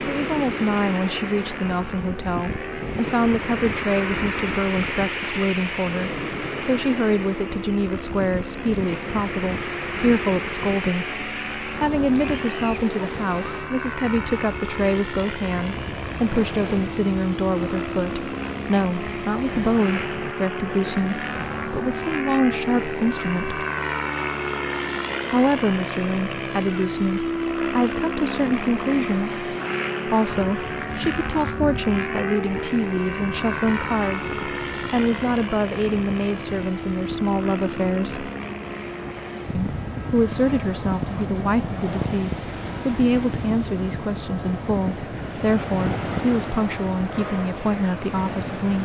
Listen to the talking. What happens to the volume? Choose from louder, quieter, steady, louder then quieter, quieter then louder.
steady.